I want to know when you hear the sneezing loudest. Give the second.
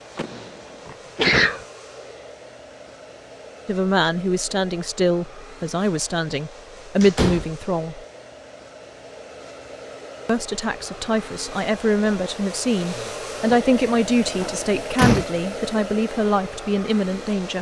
1 s.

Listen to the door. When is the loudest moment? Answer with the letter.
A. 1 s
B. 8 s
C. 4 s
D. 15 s
D.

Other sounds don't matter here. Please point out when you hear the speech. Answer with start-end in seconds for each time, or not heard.
3.6-8.0, 10.2-17.5.